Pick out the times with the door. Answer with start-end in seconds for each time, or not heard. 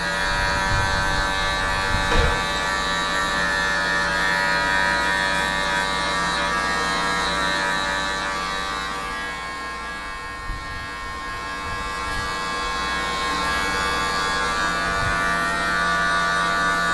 2.0-2.7.